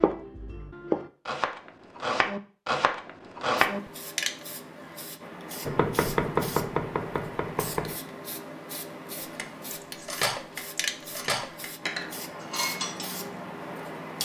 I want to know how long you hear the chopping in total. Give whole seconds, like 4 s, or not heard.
6 s.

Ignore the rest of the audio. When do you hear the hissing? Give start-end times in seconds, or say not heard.
3.6-14.2.